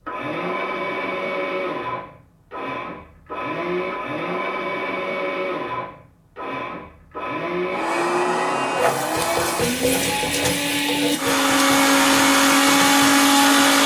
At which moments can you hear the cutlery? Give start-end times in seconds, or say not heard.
not heard.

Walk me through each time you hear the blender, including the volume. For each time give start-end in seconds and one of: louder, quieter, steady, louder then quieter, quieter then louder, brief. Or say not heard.
0.0-13.8 louder.